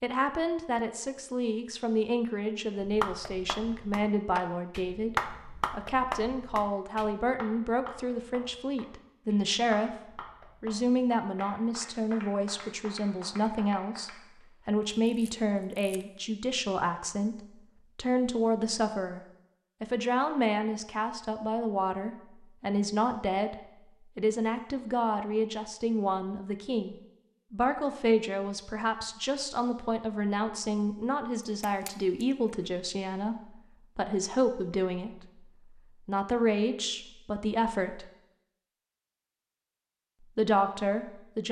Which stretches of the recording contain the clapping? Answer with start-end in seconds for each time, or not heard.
2.8-14.4.